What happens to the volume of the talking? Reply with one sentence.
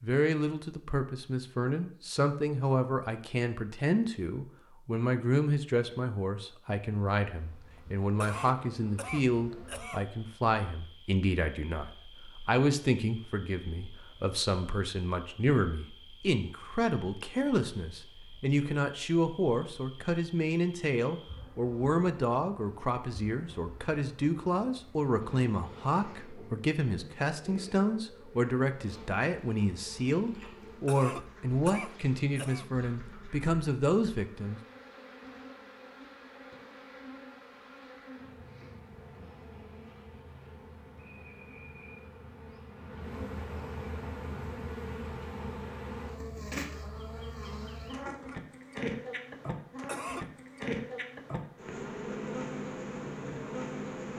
The volume of the talking stays about the same.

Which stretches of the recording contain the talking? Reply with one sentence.
The talking can be heard from 0.0 to 34.6 s.